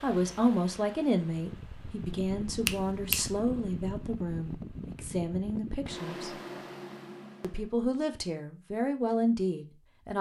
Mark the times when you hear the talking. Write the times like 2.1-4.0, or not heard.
0.0-6.3, 7.4-10.1.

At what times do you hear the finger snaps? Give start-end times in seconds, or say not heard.
2.6-3.4.